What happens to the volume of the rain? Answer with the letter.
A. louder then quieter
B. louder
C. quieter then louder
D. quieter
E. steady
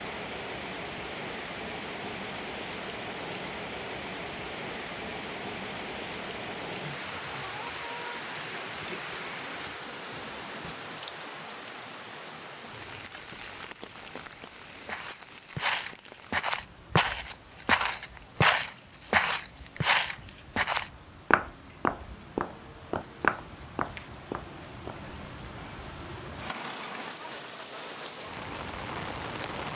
C.